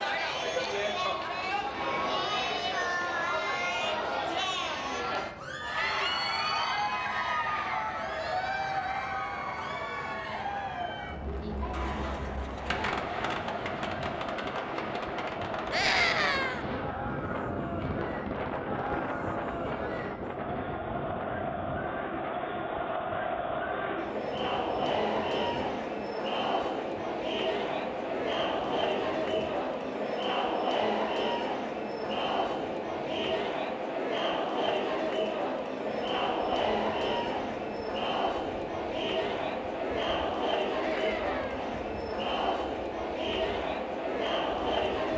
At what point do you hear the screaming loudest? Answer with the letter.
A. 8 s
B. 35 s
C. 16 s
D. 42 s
C.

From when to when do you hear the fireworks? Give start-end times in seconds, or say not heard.
11.7-18.9.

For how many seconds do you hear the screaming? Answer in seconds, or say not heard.
3 s.